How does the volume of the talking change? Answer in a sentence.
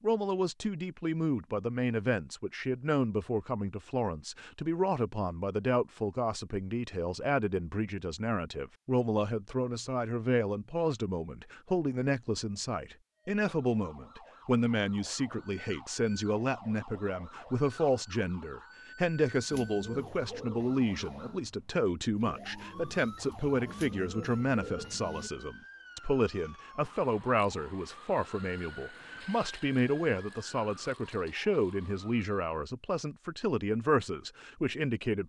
The loudness of the talking stays about the same.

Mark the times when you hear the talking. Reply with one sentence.
The talking can be heard from 0.0 to 35.2 s.